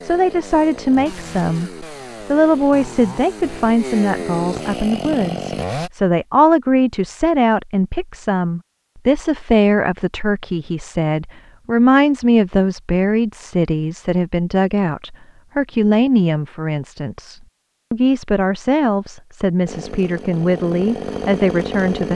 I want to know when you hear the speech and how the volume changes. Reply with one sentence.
The speech can be heard from 0.0 to 22.1 s, at a steady volume.